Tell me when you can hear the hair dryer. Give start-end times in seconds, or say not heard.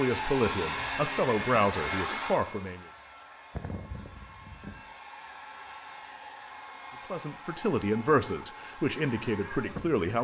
0.0-10.2.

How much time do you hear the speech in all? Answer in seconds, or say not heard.
6 s.